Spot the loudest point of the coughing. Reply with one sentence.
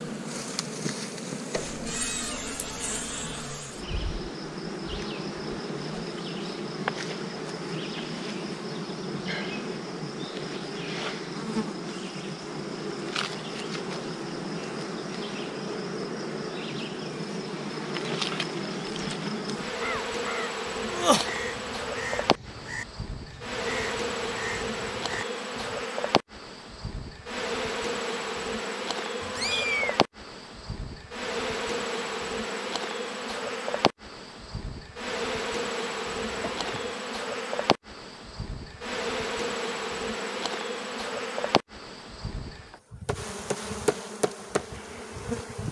The loudest moment of the coughing is at 21 seconds.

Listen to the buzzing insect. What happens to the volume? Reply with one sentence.
The volume of the buzzing insect stays about the same.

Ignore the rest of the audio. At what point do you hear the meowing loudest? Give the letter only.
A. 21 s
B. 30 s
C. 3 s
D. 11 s
B.